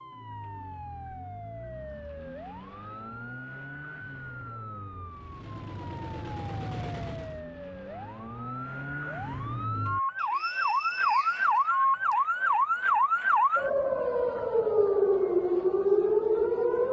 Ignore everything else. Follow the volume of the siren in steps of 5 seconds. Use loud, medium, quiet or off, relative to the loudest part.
quiet, quiet, loud, loud.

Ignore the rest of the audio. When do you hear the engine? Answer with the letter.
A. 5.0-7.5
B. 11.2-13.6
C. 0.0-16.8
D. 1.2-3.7
A.